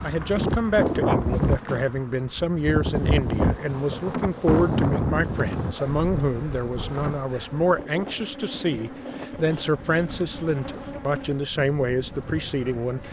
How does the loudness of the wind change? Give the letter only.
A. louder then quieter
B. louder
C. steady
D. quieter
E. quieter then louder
D.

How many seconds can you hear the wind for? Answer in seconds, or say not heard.
13 s.